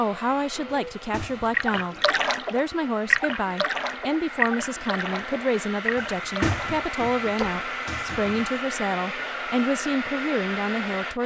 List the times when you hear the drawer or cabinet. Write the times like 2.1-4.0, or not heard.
0.7-2.2, 6.0-8.5.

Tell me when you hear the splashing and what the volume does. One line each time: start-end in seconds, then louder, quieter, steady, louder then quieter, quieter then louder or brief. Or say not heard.
1.5-7.7 quieter.